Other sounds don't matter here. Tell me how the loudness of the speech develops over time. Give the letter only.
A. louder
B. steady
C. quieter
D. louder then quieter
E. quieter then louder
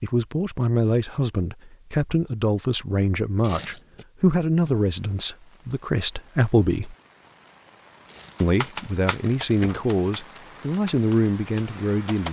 B.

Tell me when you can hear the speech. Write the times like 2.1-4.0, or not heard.
0.0-7.0, 8.4-12.2.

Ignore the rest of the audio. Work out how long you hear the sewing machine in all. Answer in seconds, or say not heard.
not heard.